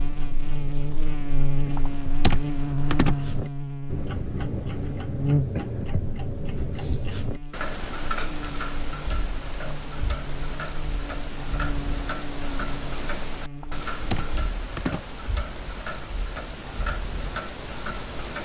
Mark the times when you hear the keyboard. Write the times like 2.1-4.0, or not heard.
1.8-3.2, 13.6-15.1.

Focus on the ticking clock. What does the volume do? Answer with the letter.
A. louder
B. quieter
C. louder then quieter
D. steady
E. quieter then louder
A.